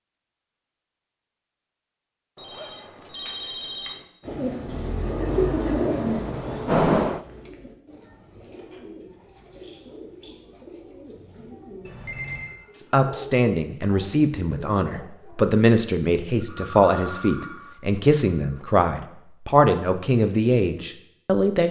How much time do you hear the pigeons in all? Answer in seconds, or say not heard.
11 s.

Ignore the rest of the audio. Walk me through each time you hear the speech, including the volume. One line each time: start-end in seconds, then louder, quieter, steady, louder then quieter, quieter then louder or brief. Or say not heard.
12.9-21.6 steady.